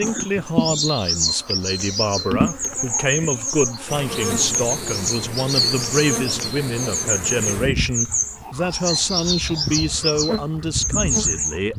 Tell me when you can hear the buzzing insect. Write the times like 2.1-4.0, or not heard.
0.0-11.7.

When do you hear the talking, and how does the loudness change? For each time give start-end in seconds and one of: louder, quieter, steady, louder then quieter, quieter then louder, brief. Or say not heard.
0.0-11.7 steady.